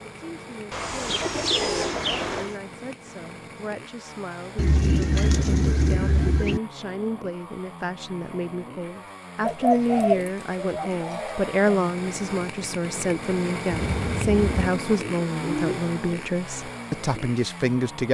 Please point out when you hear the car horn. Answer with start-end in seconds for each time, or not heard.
13.7-14.7.